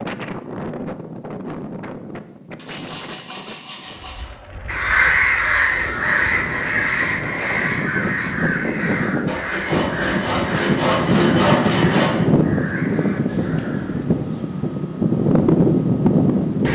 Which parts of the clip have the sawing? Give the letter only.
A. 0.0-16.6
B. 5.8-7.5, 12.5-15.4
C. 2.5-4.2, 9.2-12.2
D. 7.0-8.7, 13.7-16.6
C.